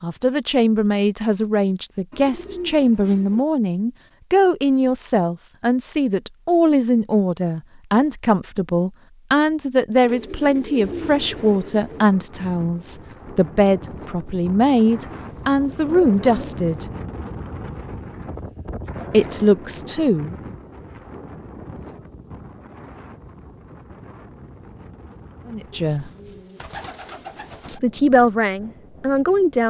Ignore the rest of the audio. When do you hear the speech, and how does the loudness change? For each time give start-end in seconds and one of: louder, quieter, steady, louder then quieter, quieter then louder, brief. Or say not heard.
0.0-16.9 steady
19.1-20.4 brief
25.4-26.1 brief
27.6-29.6 brief.